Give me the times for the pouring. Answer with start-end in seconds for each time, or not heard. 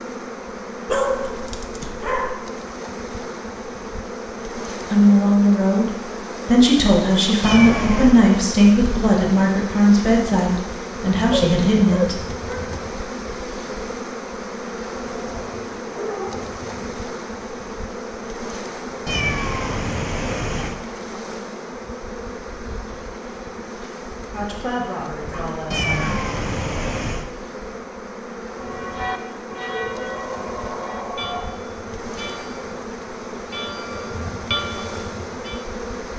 not heard.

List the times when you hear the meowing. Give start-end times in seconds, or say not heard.
7.4-8.3, 19.1-20.8, 25.7-27.2.